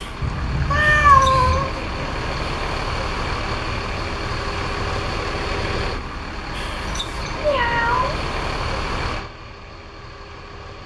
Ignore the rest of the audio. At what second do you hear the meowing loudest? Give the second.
1 s.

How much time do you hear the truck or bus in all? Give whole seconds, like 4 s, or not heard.
11 s.